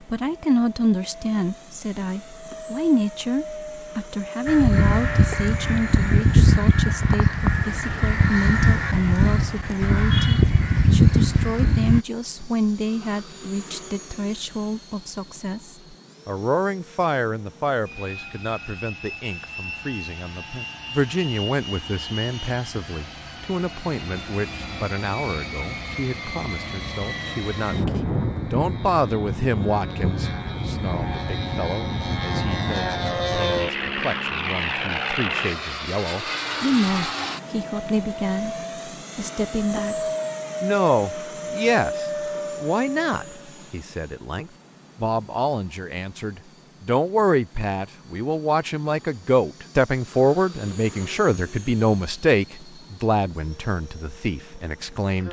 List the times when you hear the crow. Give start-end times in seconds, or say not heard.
4.5-12.0.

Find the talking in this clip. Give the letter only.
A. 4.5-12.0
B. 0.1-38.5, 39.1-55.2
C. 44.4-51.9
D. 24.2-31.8
B.